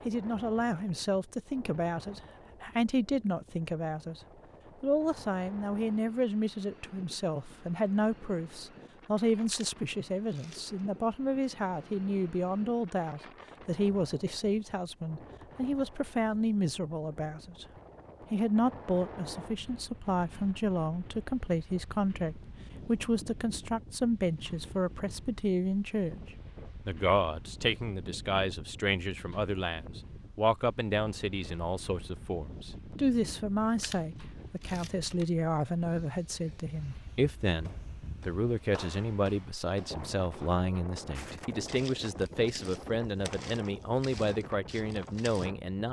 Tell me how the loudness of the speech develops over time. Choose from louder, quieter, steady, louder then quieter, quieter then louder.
steady.